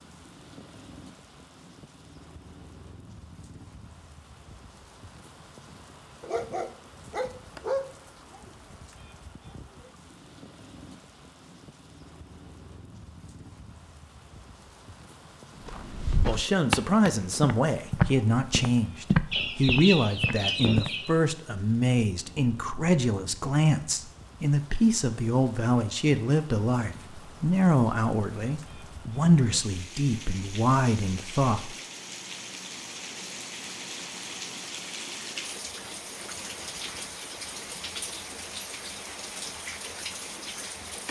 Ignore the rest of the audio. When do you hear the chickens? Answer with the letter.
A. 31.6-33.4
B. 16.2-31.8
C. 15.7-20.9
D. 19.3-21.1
D.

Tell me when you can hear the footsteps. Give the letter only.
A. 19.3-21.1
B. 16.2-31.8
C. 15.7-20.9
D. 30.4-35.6
C.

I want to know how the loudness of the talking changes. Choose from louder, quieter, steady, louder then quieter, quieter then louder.
steady.